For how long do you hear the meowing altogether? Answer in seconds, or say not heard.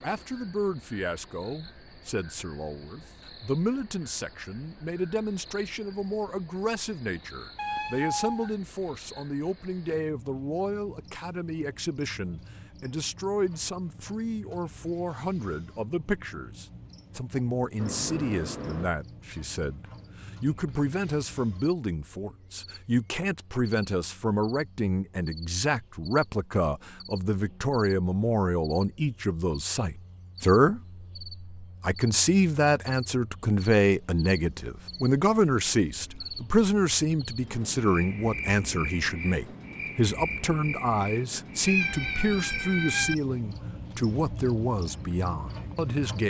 4 s.